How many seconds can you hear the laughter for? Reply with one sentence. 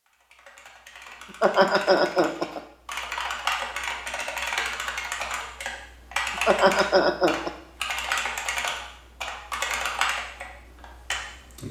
The laughter can be heard for 2 seconds in total.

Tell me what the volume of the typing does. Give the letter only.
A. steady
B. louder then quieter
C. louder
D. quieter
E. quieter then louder
C.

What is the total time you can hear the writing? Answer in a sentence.
You can't hear the writing here.